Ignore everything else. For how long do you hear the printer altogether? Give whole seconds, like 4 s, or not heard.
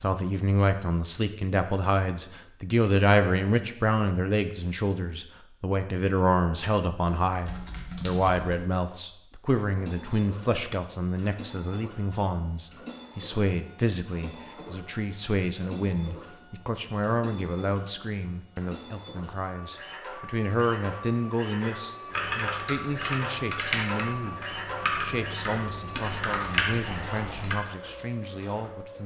19 s.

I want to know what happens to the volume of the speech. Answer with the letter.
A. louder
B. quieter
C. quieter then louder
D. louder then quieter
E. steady
B.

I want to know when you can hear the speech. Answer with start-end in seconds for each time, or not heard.
0.0-29.0.